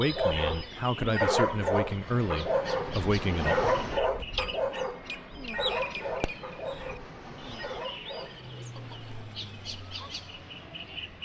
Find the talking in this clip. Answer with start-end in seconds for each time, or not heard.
0.0-3.5.